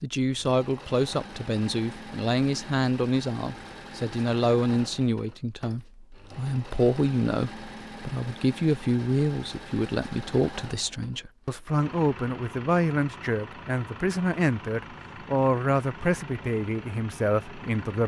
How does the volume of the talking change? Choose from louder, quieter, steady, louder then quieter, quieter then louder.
steady.